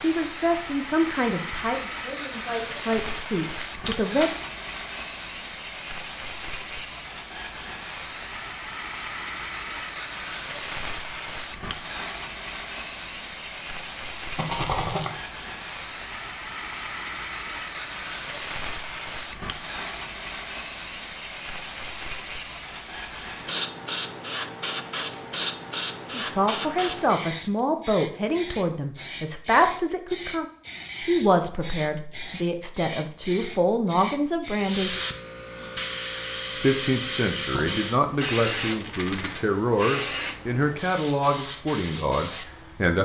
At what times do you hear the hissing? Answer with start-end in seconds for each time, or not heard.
0.0-43.0.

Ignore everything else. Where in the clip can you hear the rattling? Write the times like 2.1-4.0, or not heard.
3.4-4.3, 14.3-15.1, 38.7-39.5.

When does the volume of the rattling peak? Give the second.
15 s.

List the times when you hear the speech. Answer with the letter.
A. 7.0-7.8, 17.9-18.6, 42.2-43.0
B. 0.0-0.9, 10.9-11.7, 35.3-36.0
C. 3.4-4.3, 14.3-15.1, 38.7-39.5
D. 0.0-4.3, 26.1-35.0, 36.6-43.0
D.